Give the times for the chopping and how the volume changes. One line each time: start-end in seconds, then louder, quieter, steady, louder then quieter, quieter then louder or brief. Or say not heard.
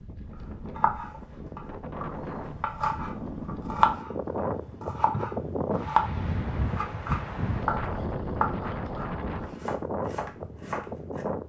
0.3-11.2 louder then quieter.